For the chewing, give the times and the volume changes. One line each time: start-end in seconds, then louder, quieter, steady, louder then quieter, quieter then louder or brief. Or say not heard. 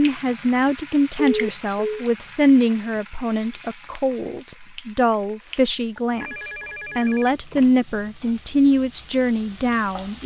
not heard.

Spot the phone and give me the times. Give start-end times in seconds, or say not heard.
1.1-2.0, 6.2-7.8.